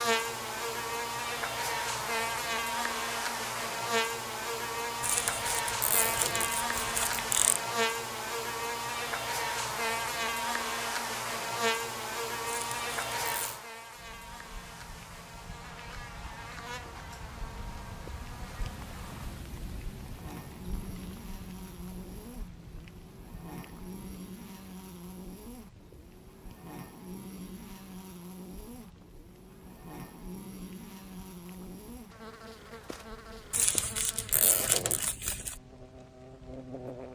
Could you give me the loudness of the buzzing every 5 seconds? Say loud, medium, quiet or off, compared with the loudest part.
loud, loud, loud, quiet, quiet, quiet, quiet, quiet.